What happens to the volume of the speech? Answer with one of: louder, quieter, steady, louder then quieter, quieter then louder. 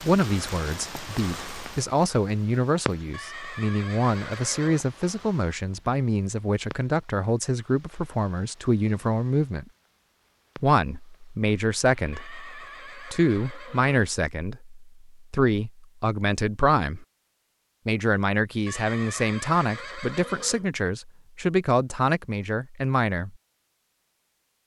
steady.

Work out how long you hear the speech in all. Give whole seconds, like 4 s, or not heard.
22 s.